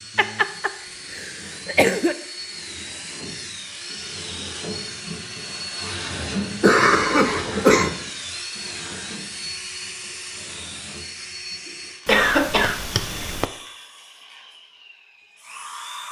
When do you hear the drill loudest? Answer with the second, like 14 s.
6 s.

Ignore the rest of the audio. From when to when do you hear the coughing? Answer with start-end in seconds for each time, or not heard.
0.1-2.1, 6.6-8.0, 12.1-13.4.